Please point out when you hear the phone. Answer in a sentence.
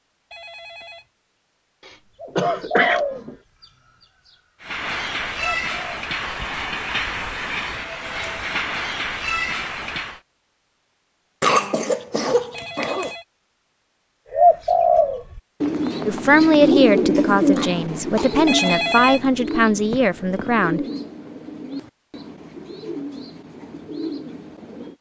The phone can be heard from 0.3 to 1.1 s, from 12.5 to 13.2 s and from 18.4 to 20.7 s.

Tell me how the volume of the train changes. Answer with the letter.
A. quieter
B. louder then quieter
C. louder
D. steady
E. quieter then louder
D.